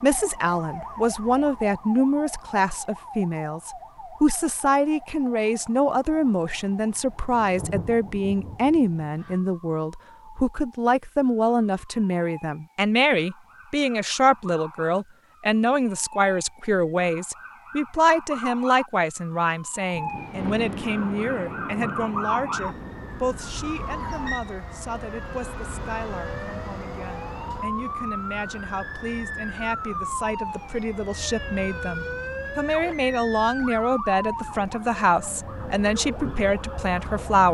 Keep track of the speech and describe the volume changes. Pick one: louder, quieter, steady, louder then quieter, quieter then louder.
quieter then louder.